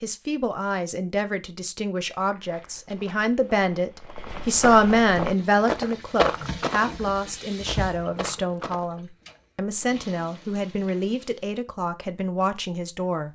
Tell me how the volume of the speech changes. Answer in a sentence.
The loudness of the speech goes up, then down.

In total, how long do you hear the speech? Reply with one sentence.
The speech can be heard for 13 seconds in total.